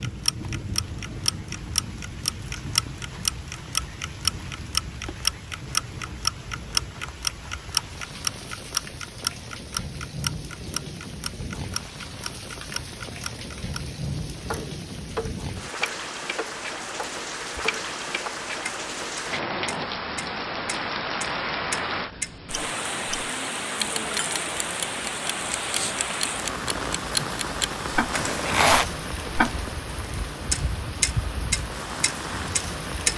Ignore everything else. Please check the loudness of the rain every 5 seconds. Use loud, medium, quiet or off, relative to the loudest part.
medium, medium, medium, loud, loud, loud, loud.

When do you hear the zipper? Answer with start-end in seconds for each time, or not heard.
28.1-28.9.